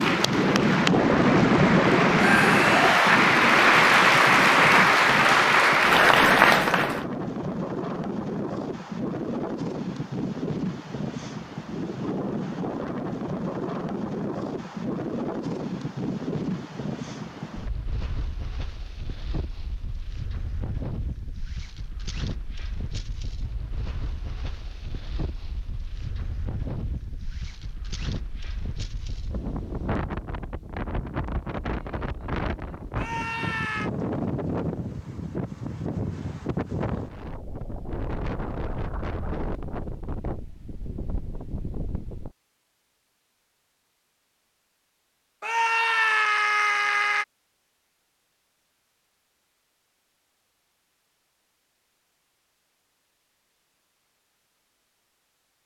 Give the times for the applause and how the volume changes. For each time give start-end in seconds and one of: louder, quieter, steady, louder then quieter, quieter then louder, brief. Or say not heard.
0.0-7.0 louder.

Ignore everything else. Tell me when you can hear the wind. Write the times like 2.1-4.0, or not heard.
0.0-42.4.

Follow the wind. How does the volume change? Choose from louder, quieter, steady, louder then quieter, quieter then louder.
quieter then louder.